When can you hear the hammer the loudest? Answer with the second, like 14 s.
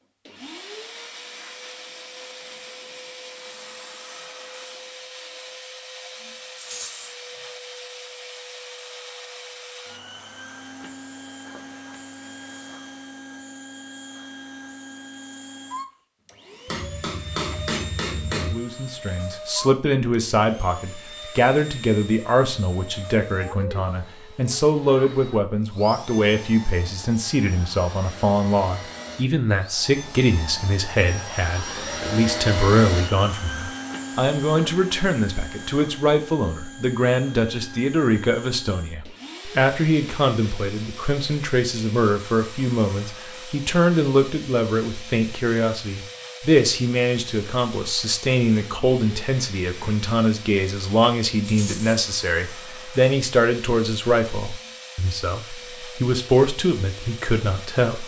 18 s.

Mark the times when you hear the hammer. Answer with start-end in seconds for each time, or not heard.
16.6-18.6.